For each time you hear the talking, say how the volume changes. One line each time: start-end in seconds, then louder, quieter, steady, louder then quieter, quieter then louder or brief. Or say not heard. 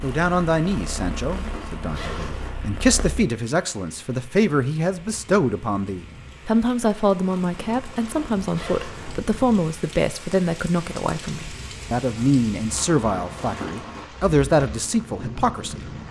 0.0-15.8 steady.